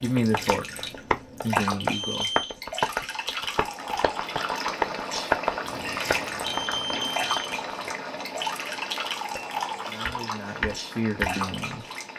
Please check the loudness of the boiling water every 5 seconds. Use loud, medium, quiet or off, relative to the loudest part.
loud, loud, medium.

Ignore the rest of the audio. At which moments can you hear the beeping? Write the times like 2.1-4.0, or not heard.
1.9-2.5, 6.5-7.5.